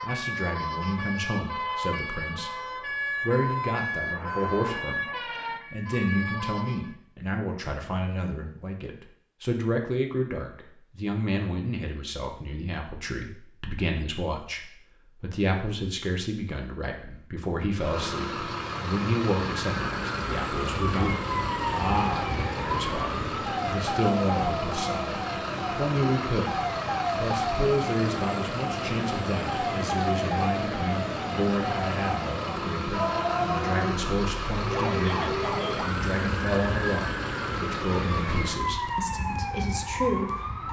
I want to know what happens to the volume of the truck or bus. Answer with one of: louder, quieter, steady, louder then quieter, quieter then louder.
steady.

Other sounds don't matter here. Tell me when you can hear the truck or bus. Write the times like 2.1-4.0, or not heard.
17.7-38.7.